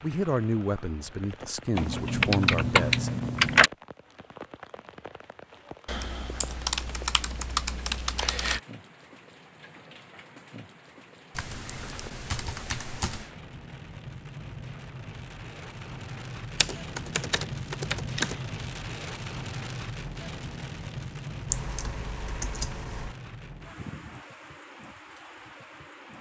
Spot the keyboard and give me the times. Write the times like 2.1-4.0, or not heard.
1.8-3.7, 5.8-8.6, 11.3-13.2, 16.6-18.4, 21.4-23.1.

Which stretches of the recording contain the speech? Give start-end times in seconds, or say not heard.
0.0-3.1.